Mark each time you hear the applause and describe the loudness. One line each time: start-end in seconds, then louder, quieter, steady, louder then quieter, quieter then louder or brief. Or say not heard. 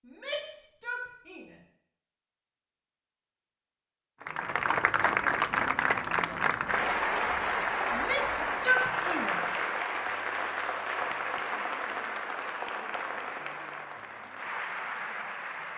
4.2-15.7 quieter.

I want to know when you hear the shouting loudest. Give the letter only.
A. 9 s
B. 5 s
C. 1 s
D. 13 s
A.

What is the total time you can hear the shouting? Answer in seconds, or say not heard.
3 s.